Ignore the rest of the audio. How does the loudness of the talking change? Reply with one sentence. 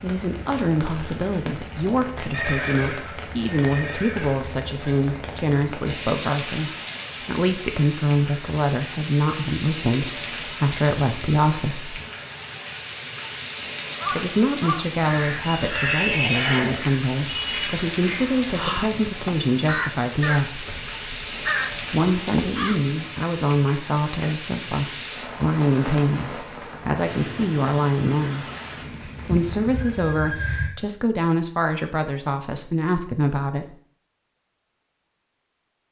The volume of the talking stays about the same.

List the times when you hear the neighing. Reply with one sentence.
You can hear the neighing from 2.3 to 4.3 s, from 15.4 to 16.8 s and from 29.3 to 30.7 s.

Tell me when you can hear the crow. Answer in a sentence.
The crow can be heard from 13.9 to 23.2 s.